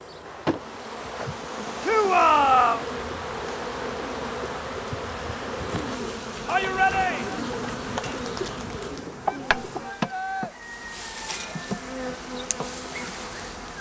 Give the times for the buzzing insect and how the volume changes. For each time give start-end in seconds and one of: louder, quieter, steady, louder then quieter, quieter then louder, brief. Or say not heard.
0.0-13.7 steady.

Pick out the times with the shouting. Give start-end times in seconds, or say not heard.
1.8-2.8, 6.5-7.4, 9.2-10.6.